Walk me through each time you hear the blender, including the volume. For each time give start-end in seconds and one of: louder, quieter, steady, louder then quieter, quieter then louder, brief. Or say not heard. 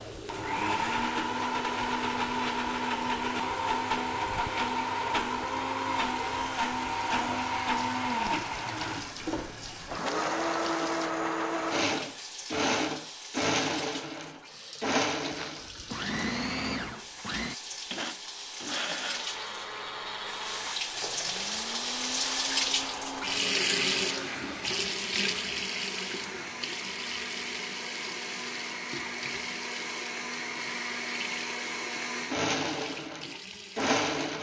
0.0-34.3 quieter then louder.